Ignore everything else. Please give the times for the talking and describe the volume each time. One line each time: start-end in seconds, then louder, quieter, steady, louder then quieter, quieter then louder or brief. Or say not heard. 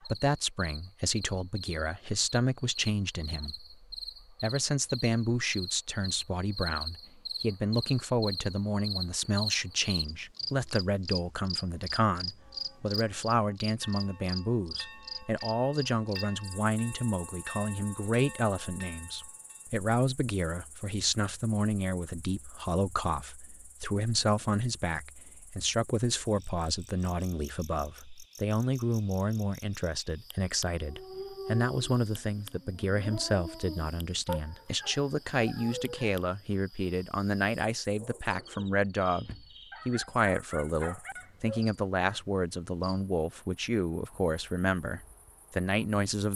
0.0-46.3 steady.